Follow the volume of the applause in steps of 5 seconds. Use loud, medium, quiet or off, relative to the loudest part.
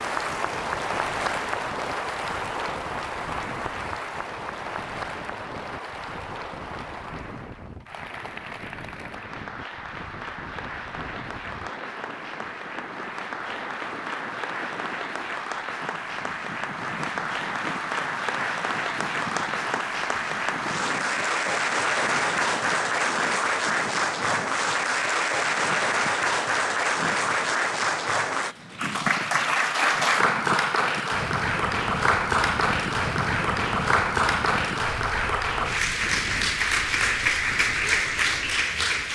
medium, quiet, medium, medium, loud, loud, loud, loud.